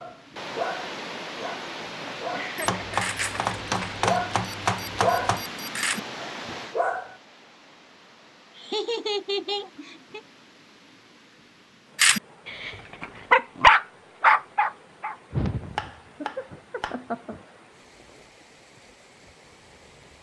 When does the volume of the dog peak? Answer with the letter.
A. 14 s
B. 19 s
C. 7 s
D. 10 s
A.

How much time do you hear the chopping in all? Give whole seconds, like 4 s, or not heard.
4 s.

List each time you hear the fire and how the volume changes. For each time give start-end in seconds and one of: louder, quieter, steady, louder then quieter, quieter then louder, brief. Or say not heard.
not heard.